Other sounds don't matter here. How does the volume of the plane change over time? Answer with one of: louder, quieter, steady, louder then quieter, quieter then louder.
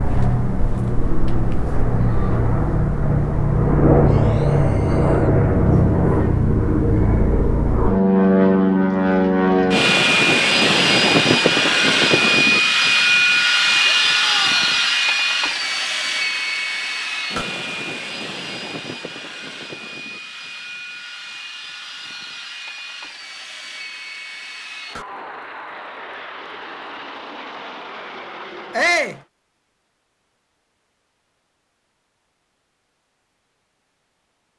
quieter.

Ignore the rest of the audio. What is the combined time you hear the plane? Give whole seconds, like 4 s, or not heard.
29 s.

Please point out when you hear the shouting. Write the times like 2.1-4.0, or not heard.
4.0-5.3, 13.8-14.6, 28.7-29.2.